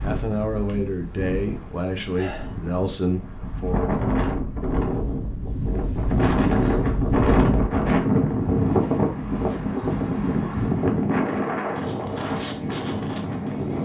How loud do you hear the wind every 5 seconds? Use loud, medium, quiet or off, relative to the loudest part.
medium, loud, loud.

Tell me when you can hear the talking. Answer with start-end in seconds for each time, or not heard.
0.0-4.0.